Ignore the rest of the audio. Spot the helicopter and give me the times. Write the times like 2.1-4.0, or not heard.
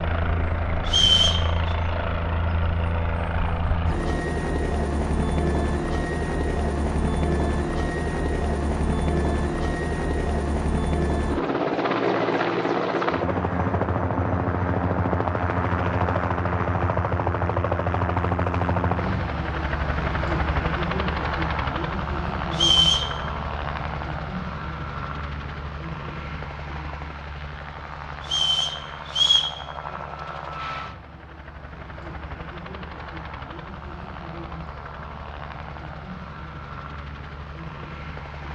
0.0-38.5.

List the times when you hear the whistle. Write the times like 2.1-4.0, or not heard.
0.8-1.7, 22.5-23.1, 28.2-29.5.